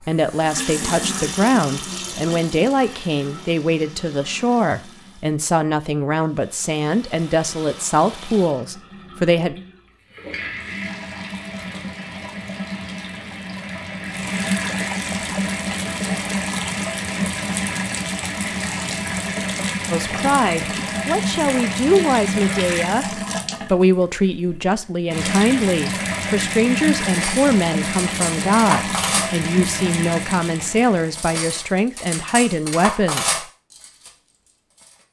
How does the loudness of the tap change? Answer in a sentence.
The volume of the tap goes up.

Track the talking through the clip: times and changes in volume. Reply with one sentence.
The talking can be heard from 0.0 to 9.6 s, at a steady volume; and from 19.9 to 33.5 s, at a steady volume.